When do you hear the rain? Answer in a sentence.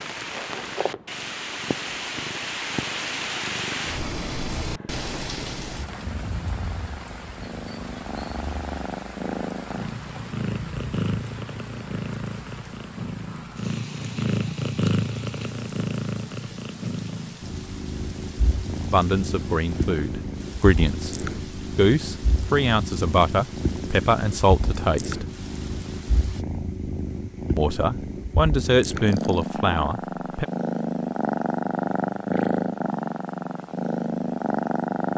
You can hear the rain from 0.0 to 26.4 s.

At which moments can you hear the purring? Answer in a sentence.
The purring can be heard from 0.0 to 35.1 s.